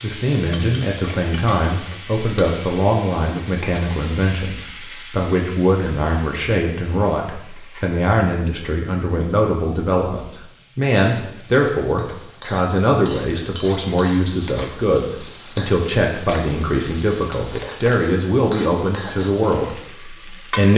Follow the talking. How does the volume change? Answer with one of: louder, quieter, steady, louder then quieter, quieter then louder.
steady.